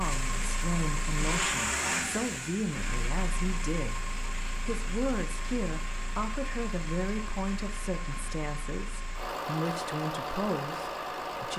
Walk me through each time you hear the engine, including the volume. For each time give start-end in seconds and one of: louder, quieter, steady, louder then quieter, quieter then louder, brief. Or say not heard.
0.0-11.5 quieter then louder.